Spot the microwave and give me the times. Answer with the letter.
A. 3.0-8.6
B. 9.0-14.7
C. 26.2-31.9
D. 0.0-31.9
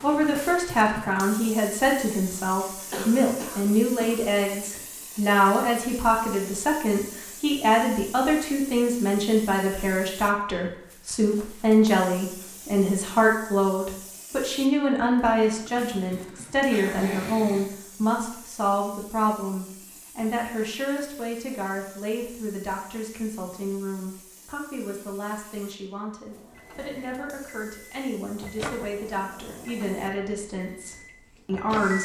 C.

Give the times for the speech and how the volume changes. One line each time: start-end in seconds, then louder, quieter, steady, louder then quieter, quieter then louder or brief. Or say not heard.
0.0-31.9 quieter.